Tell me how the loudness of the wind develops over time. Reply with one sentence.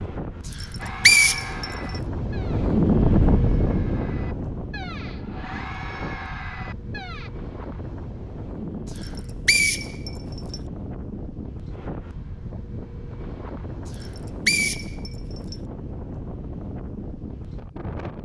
The volume of the wind goes down.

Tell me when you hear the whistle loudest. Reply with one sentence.
The volume of the whistle peaks at 1 second.